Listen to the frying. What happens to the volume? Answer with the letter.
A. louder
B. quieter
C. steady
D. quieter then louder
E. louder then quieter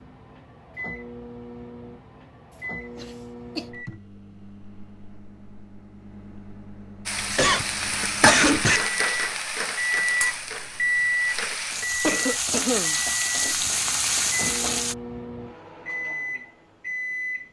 D.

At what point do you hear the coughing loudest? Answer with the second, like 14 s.
8 s.